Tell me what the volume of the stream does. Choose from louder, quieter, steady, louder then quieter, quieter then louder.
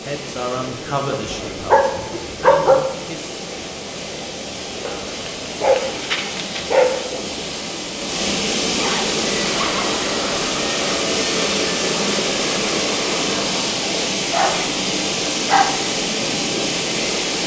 louder.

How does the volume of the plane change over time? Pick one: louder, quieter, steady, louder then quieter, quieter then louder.
steady.